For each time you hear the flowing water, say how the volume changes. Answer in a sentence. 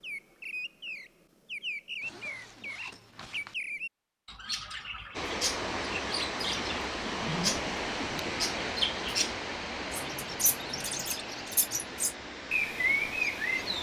You can hear the flowing water from 5.1 to 13.7 s, getting quieter.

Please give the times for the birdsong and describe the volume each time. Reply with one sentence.
You can hear the birdsong from 0.0 to 13.7 s, getting louder.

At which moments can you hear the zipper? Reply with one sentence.
You can hear the zipper from 2.0 to 3.5 s and from 7.0 to 8.4 s.